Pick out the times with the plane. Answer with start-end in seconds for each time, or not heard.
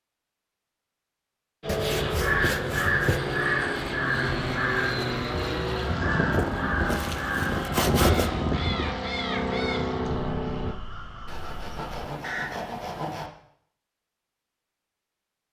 1.6-10.8.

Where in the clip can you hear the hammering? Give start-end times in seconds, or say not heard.
not heard.